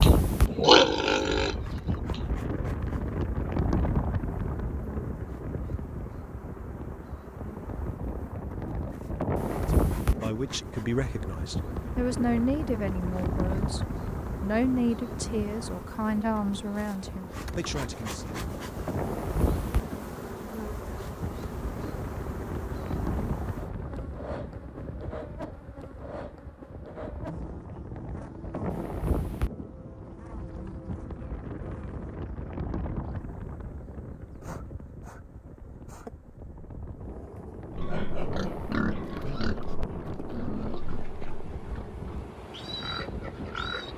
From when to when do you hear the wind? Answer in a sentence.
You can hear the wind from 0.0 to 43.9 s.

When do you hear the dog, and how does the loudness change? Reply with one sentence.
The dog can't be heard in this clip.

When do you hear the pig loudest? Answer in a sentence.
The volume of the pig peaks at 1 second.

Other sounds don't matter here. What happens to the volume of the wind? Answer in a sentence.
The volume of the wind goes down.